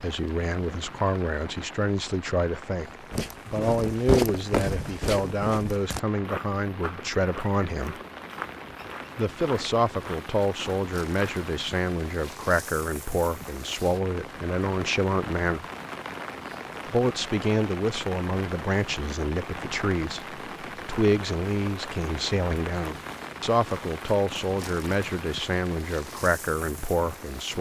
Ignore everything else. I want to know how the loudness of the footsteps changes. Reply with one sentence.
The volume of the footsteps goes down.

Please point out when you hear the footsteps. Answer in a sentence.
You can hear the footsteps from 2.9 to 11.5 s.